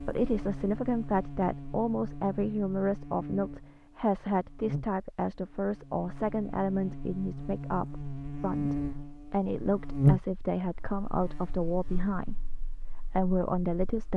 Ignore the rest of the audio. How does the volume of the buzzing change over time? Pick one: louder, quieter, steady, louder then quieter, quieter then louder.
louder then quieter.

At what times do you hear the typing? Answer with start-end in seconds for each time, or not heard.
not heard.